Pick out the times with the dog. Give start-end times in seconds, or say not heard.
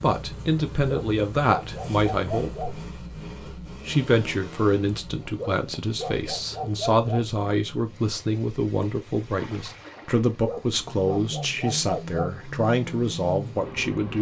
0.8-2.8, 5.3-7.3, 10.4-12.2.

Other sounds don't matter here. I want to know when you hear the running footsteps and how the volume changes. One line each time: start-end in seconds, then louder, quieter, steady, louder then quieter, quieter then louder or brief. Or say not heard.
not heard.